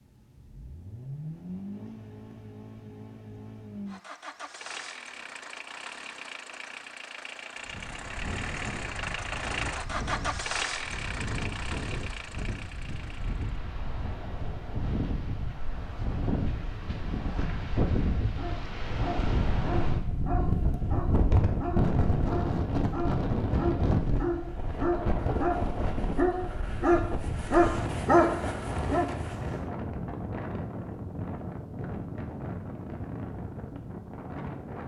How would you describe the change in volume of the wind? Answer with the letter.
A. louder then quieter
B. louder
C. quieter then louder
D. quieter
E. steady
A.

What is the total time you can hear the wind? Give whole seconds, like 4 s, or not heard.
27 s.